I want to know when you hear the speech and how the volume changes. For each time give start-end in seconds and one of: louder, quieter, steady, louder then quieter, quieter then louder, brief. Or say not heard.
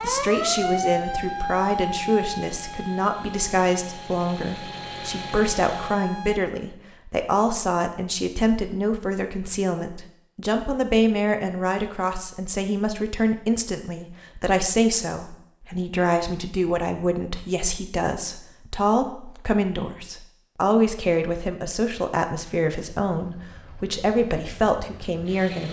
0.0-25.6 steady.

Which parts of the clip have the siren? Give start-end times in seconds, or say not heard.
0.0-6.4.